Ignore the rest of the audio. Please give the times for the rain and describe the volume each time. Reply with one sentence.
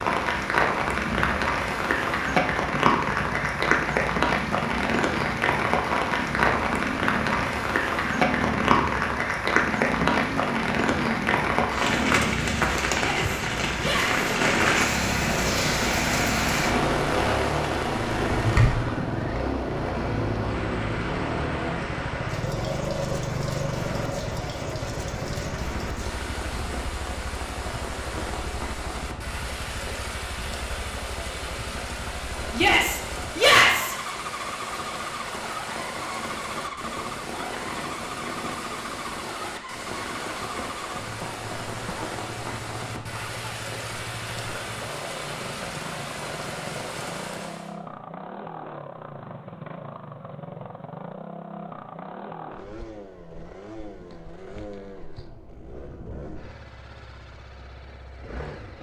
You can hear the rain from 0.0 to 47.8 s, getting quieter.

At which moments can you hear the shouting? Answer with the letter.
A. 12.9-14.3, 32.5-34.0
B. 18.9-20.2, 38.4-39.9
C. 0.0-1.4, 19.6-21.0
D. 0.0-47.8
A.